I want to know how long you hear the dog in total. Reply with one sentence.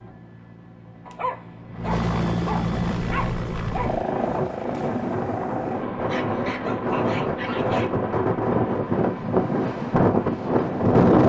You can hear the dog for 5 seconds altogether.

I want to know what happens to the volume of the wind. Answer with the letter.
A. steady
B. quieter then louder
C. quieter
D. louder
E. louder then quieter
D.